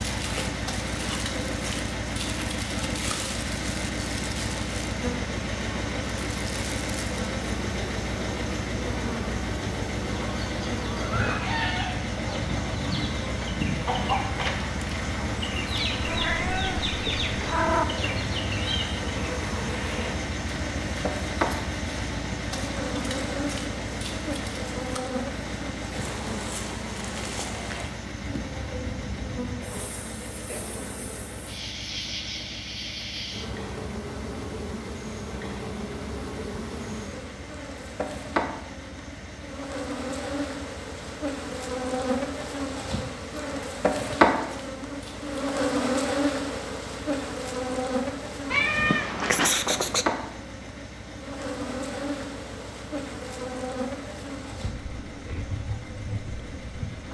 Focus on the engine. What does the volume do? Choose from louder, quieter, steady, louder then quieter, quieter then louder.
quieter.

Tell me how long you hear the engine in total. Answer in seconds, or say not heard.
57 s.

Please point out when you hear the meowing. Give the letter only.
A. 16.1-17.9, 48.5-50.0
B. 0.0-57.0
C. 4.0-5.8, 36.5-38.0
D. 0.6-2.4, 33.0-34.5
A.